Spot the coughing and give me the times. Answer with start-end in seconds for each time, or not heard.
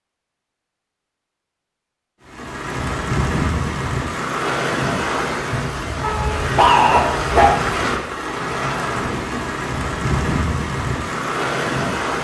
not heard.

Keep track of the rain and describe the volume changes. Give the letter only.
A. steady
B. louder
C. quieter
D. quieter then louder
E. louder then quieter
A.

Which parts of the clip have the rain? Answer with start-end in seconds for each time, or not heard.
2.2-12.1.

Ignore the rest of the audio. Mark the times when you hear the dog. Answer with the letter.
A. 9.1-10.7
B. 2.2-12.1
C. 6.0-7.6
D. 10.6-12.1
C.